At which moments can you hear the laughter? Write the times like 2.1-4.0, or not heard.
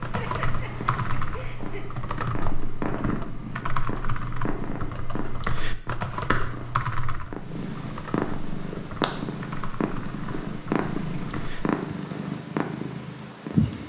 0.0-2.0.